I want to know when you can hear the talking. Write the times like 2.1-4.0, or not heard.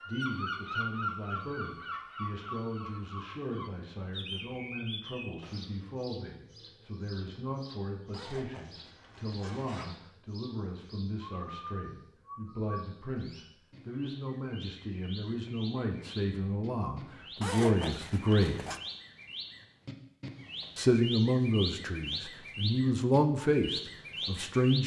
0.0-18.6, 20.8-24.8.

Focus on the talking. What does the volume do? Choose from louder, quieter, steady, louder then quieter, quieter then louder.
louder.